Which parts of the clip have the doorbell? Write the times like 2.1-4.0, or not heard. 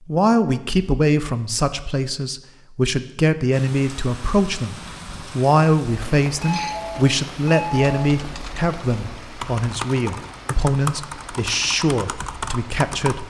6.4-8.2.